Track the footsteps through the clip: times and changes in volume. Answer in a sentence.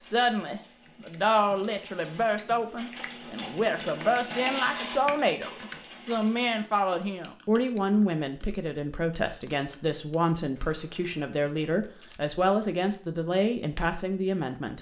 You can't hear the footsteps here.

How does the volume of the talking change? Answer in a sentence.
The loudness of the talking stays about the same.